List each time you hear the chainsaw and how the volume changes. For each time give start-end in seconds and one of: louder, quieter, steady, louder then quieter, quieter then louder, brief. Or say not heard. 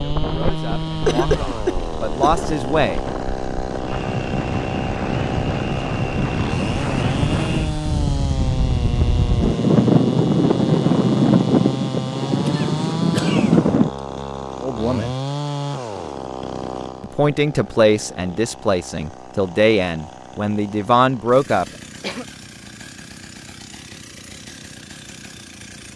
0.0-25.9 quieter.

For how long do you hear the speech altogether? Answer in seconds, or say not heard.
8 s.